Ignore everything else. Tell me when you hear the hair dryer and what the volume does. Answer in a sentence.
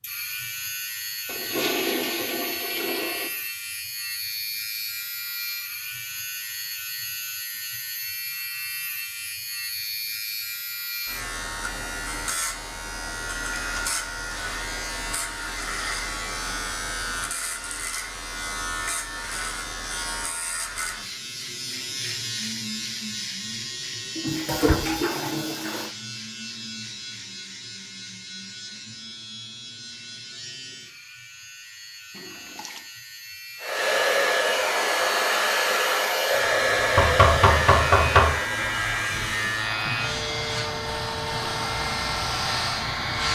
The hair dryer can be heard from 33.6 to 43.3 s, getting quieter.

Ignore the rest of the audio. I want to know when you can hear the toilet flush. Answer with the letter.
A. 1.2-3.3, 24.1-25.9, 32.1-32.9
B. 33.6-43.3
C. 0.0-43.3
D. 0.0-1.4
A.